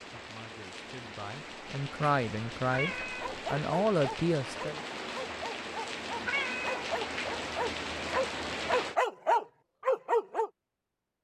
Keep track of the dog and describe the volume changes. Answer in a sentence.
The volume of the dog goes up.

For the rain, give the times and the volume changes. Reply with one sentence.
The rain can be heard from 0.0 to 8.9 s, getting louder.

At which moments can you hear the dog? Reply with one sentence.
The dog can be heard from 3.2 to 10.5 s.